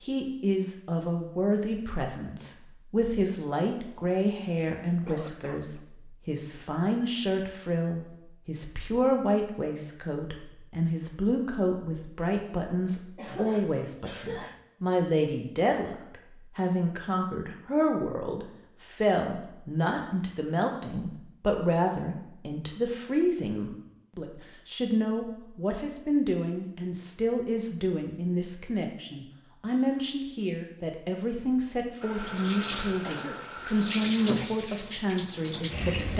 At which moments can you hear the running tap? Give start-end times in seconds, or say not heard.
32.0-36.1.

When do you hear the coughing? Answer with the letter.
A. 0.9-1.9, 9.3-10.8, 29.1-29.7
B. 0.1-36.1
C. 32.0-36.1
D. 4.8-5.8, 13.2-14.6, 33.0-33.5
D.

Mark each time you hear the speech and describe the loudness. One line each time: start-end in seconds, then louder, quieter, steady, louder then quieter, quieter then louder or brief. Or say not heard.
0.1-36.1 steady.